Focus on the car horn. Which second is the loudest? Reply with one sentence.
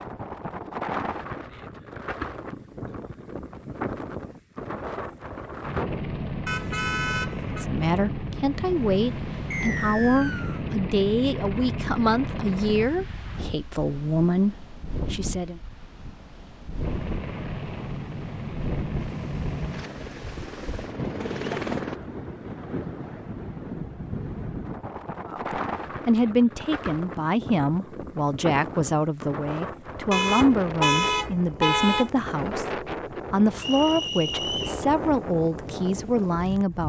The volume of the car horn peaks at 31 seconds.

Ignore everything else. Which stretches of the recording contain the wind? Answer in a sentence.
The wind can be heard from 0.0 to 36.8 s.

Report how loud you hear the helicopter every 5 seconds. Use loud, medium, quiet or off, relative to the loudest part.
off, loud, loud, loud, loud, off, off, off.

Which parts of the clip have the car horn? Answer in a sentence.
The car horn can be heard from 6.5 to 7.7 s, from 21.2 to 21.8 s and from 30.1 to 32.1 s.